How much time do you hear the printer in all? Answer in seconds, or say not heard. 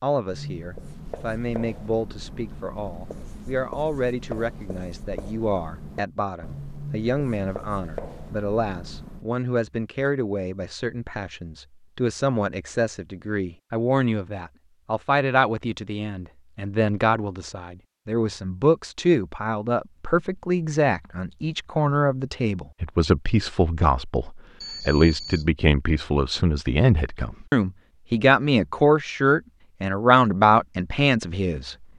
not heard.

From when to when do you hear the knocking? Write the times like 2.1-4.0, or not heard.
not heard.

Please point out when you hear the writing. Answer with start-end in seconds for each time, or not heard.
0.2-9.2.